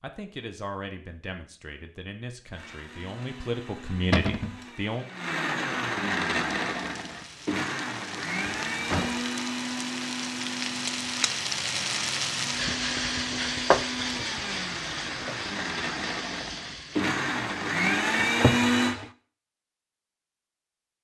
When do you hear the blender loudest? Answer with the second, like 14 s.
18 s.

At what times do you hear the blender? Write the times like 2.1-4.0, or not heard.
2.5-18.9.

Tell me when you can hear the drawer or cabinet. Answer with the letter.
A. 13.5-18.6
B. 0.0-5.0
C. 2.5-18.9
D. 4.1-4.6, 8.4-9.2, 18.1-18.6
D.